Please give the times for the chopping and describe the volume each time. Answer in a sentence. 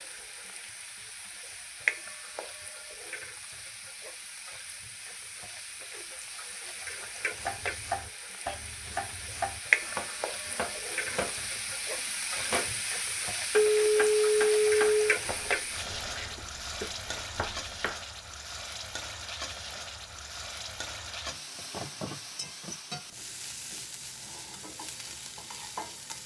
The chopping can be heard from 7.3 to 18.1 s, getting quieter.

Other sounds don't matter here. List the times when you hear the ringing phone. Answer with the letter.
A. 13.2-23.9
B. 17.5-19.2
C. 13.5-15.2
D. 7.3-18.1
C.